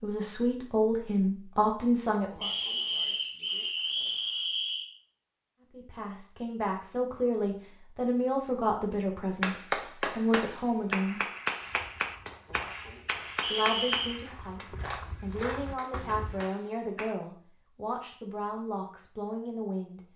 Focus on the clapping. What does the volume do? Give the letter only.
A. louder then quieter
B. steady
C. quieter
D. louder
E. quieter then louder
C.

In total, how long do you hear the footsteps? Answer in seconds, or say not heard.
5 s.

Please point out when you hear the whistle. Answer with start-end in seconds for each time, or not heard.
2.4-4.9, 13.4-14.2.